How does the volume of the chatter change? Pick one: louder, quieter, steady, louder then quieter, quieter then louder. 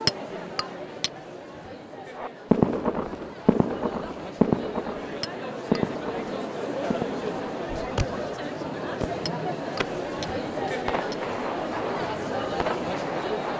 louder.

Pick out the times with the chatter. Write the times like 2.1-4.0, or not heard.
0.0-13.5.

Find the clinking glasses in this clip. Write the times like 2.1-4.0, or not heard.
0.1-1.1, 5.2-5.8, 9.2-11.2.